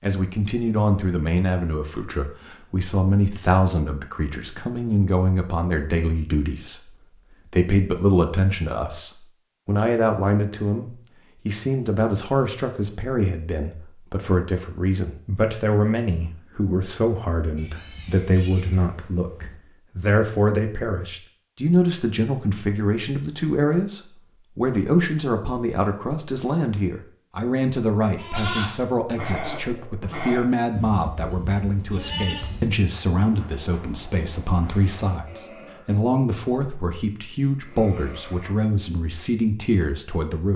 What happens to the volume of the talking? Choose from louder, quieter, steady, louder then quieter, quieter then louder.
steady.